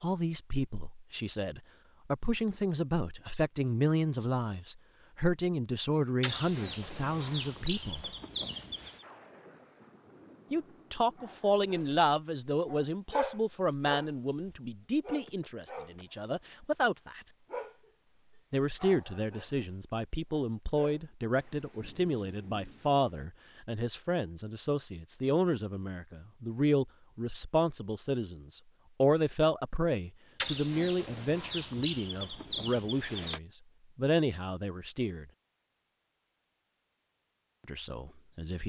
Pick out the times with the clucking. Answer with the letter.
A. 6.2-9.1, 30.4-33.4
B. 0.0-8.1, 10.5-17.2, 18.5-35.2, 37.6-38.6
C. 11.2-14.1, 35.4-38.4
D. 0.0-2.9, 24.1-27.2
A.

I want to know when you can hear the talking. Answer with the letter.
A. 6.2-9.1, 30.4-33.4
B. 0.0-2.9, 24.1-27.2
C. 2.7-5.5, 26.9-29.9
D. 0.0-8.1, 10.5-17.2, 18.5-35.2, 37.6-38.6
D.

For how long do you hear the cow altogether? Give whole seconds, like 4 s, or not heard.
not heard.